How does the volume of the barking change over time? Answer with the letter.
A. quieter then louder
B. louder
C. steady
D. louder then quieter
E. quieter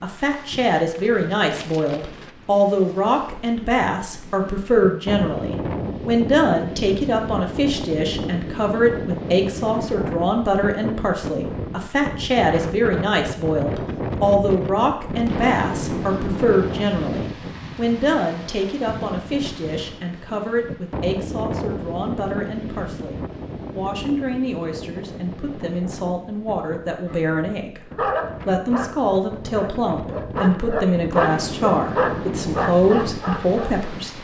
B.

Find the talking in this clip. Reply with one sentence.
The talking can be heard from 0.0 to 34.1 s.